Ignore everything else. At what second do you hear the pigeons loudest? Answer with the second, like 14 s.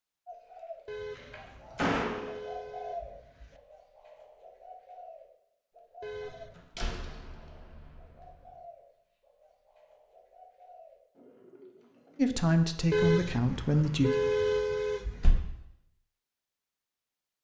3 s.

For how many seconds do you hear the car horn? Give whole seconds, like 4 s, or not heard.
6 s.